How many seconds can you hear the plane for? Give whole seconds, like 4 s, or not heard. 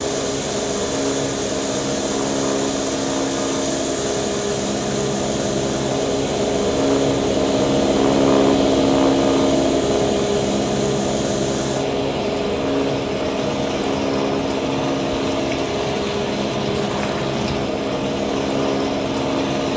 20 s.